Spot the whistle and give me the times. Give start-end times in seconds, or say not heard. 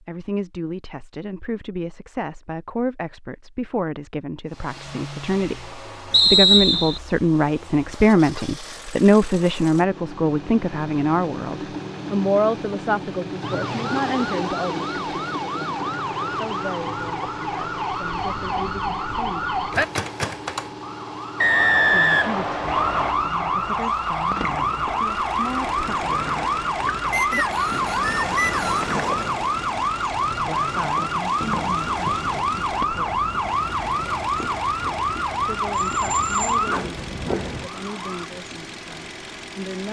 6.1-7.0, 21.4-23.1, 27.1-28.9.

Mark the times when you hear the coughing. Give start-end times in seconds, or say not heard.
not heard.